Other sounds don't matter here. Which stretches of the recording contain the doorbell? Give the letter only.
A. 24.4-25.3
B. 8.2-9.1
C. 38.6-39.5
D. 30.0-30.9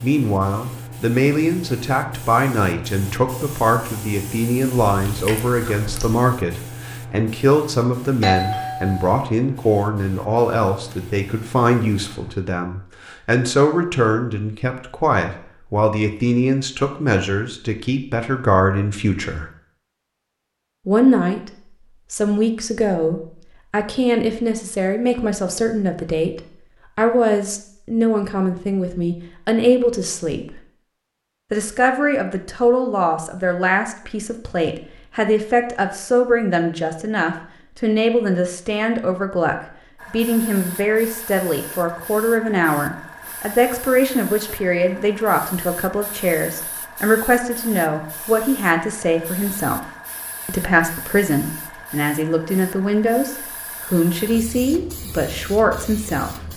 B.